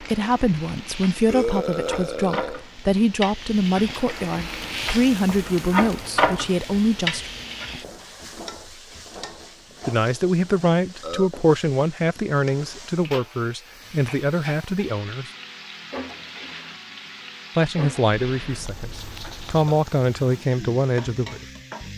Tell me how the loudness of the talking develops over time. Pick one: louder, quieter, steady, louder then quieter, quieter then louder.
steady.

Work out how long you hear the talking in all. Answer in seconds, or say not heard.
17 s.